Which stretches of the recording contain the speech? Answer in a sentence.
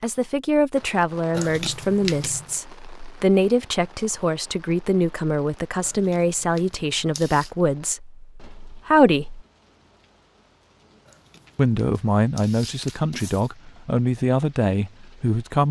The speech can be heard from 0.0 to 9.4 s and from 11.6 to 15.6 s.